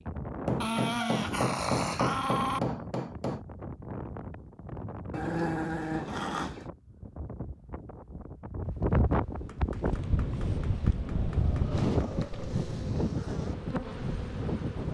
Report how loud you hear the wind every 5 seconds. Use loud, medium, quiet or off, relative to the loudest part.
medium, loud, loud.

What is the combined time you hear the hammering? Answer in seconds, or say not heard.
6 s.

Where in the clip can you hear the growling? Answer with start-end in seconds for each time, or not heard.
0.6-2.6, 5.1-6.7, 11.1-12.7.